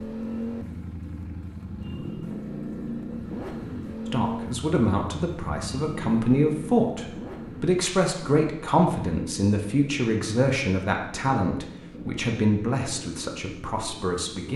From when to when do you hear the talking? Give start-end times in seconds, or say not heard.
4.1-14.5.